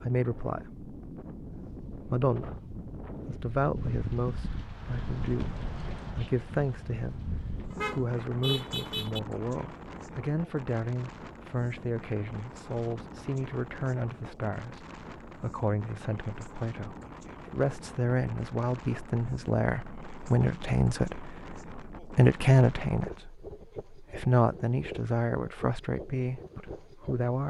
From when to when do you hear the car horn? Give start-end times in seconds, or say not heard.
7.7-9.2.